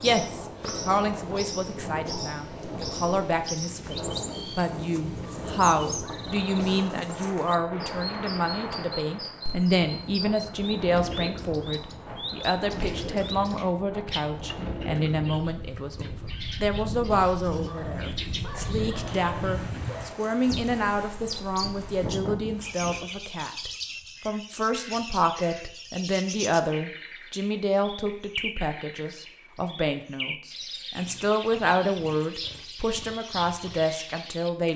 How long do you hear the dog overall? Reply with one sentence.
The dog can be heard for 4 seconds in total.